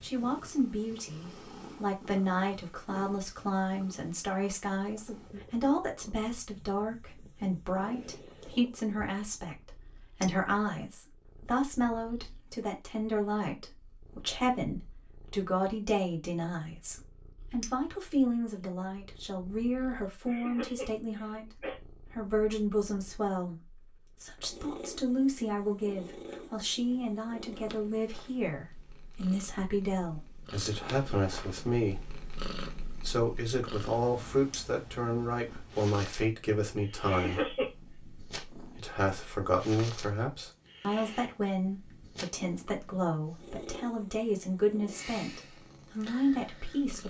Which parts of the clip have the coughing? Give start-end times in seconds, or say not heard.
20.2-21.8, 37.0-37.7.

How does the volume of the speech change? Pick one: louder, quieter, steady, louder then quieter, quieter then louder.
steady.